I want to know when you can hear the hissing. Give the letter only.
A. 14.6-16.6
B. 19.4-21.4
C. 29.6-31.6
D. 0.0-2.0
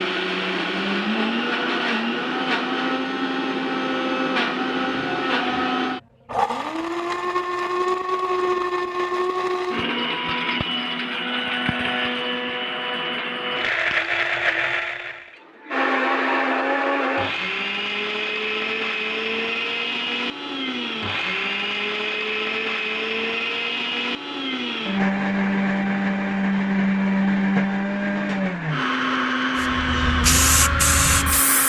C.